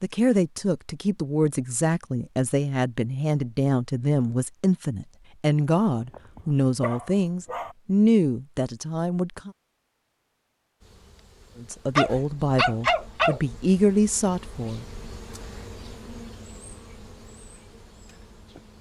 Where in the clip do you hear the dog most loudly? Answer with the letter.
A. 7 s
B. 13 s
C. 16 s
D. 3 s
B.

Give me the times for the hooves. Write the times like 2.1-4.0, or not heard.
not heard.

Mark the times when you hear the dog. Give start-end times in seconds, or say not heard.
5.9-7.8, 11.9-13.4.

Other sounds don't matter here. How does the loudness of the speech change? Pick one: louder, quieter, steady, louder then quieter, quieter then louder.
steady.